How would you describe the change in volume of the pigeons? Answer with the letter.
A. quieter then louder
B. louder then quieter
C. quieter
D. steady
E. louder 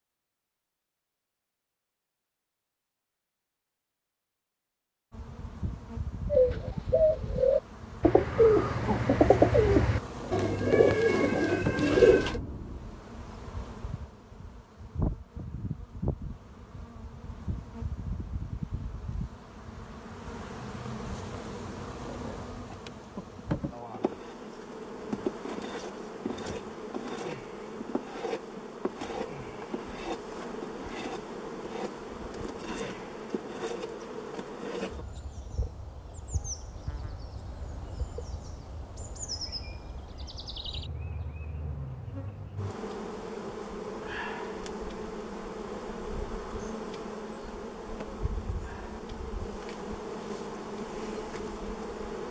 D.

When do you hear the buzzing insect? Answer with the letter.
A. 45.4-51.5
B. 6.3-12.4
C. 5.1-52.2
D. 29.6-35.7
C.